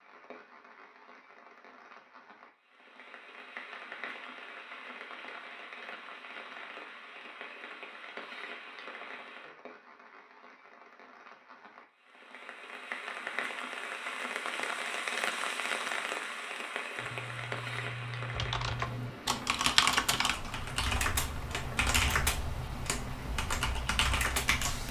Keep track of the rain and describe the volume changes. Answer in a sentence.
The loudness of the rain goes up, then down.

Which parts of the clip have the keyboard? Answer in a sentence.
You can hear the keyboard from 16.9 to 24.8 s.